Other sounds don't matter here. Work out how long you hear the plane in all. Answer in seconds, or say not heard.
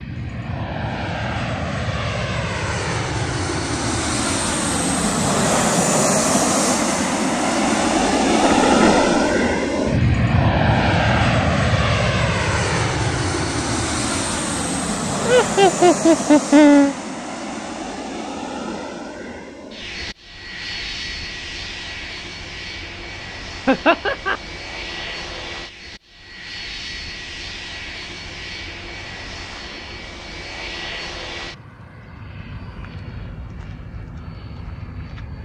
35 s.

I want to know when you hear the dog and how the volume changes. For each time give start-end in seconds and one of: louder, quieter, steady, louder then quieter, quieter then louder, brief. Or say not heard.
not heard.